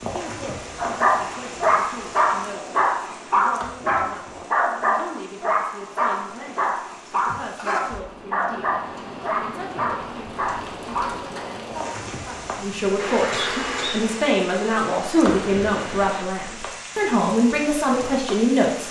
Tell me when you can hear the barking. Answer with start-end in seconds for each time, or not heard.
0.8-11.1.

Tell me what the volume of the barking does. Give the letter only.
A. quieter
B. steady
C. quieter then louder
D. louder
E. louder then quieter
A.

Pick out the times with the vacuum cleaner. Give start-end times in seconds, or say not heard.
12.9-16.2.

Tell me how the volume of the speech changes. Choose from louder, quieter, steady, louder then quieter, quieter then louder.
louder.